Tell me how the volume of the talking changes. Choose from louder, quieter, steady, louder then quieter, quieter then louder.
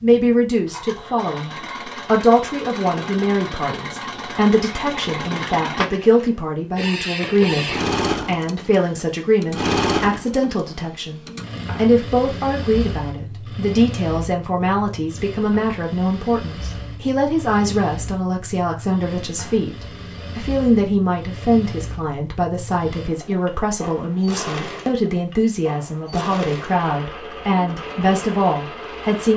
steady.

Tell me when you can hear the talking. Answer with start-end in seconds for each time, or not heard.
0.0-29.3.